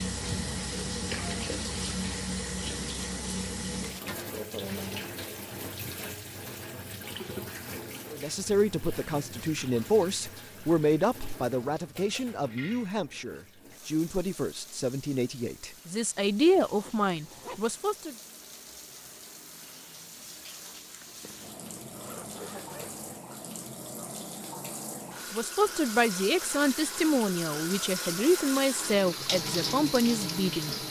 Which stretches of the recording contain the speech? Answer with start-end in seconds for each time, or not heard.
8.1-18.1, 25.3-30.8.